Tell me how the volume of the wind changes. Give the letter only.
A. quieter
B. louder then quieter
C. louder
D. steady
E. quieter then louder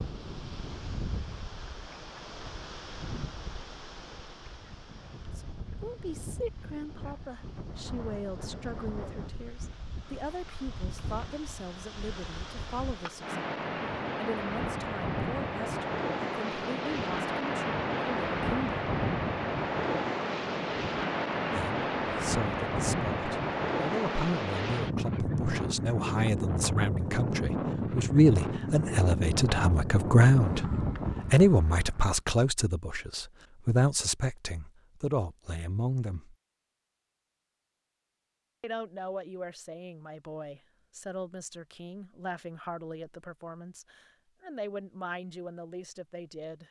C.